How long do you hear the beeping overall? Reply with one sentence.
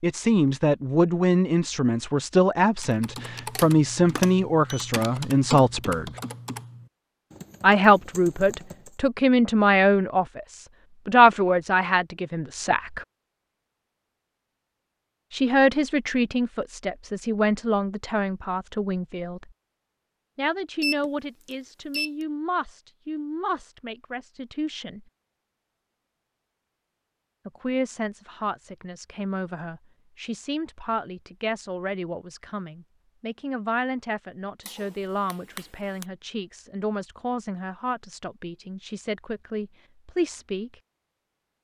The beeping can be heard for 4 seconds in total.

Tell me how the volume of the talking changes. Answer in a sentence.
The volume of the talking goes down.